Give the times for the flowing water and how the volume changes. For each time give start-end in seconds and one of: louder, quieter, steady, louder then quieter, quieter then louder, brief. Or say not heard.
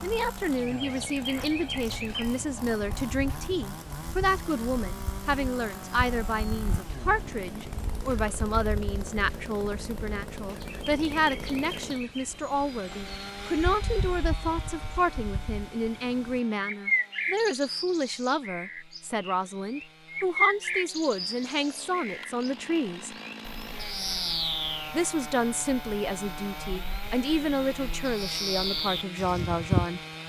not heard.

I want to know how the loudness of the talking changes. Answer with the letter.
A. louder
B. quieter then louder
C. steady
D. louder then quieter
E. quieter
C.